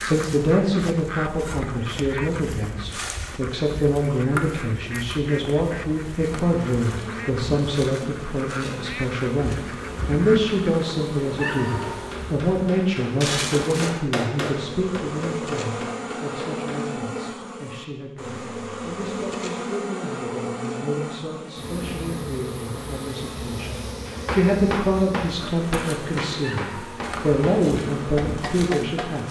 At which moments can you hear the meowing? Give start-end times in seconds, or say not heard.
11.3-11.9, 26.4-27.4.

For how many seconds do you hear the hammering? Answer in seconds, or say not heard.
10 s.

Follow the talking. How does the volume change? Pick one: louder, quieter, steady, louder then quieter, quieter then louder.
quieter then louder.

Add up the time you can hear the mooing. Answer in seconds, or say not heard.
not heard.